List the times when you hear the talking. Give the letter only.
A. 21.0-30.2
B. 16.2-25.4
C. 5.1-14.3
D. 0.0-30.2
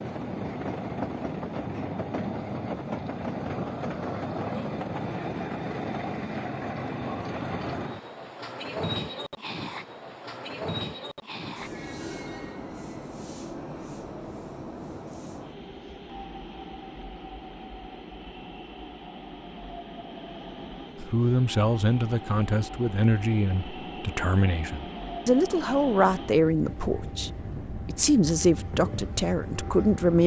A.